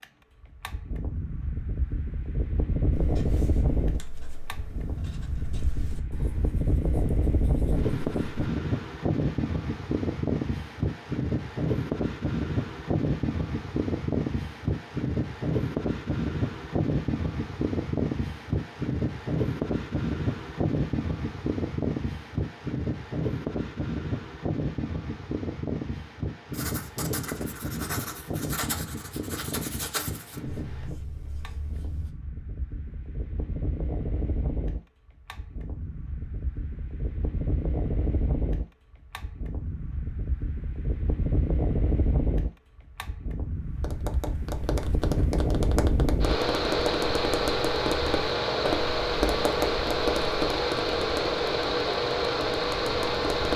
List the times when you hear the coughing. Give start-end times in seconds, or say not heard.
not heard.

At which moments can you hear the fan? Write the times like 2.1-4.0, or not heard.
0.0-53.5.